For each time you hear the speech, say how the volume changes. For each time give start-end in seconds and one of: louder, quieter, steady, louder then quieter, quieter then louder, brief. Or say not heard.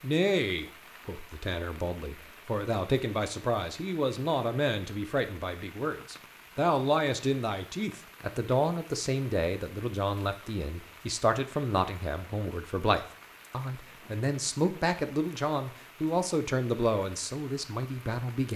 0.0-18.5 steady.